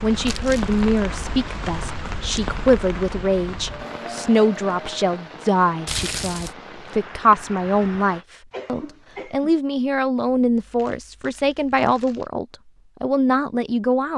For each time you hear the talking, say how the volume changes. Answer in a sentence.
The talking can be heard from 0.0 to 14.1 s, at a steady volume.